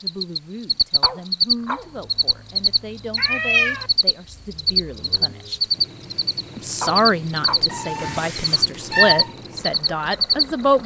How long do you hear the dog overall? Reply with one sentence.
You can hear the dog for 2 seconds altogether.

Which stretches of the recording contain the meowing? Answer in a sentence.
The meowing can be heard from 3.1 to 3.9 s and from 7.7 to 9.3 s.